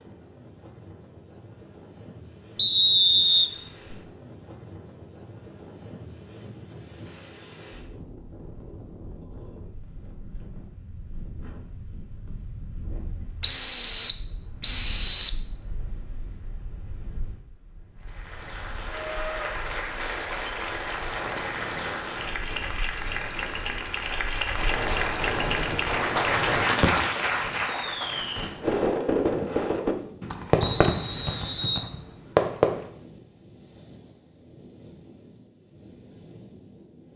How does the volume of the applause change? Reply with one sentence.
The volume of the applause goes up.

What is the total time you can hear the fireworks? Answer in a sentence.
The fireworks can be heard for 8 seconds in total.